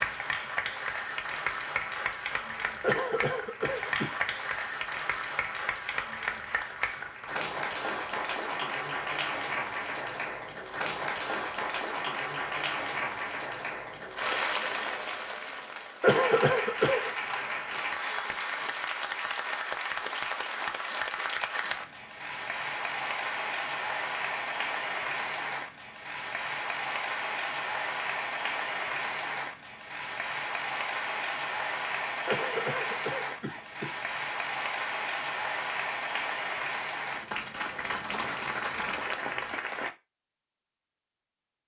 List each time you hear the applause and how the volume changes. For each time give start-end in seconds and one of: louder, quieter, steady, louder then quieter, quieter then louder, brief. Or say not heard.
0.0-39.9 steady.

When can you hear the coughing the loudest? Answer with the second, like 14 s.
16 s.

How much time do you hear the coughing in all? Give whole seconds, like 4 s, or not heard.
4 s.